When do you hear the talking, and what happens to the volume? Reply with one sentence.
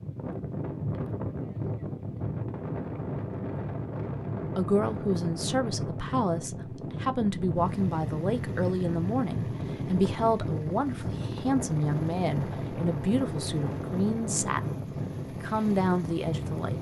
The talking can be heard from 4.5 to 16.7 s, at a steady volume.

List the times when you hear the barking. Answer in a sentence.
You can't hear the barking here.